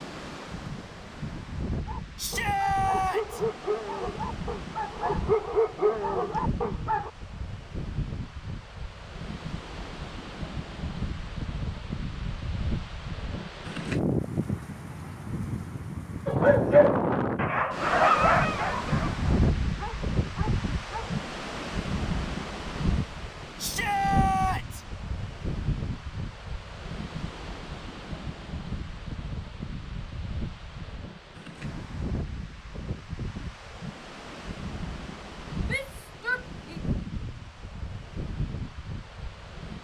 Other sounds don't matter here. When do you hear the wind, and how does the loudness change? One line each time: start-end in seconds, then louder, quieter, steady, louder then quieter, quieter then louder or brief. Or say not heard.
0.0-39.7 louder then quieter.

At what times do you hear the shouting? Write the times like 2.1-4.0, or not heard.
2.1-3.4, 23.6-24.8, 35.6-36.8.